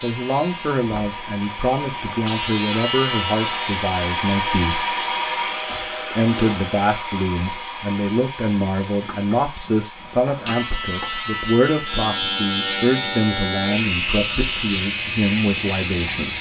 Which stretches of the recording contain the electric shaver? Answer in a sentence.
The electric shaver can be heard from 0.0 to 3.8 s and from 10.0 to 16.3 s.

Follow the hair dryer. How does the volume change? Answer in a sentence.
The volume of the hair dryer goes up, then down.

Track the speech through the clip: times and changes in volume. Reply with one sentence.
The speech can be heard from 0.0 to 4.8 s, at a steady volume; and from 6.1 to 16.3 s, at a steady volume.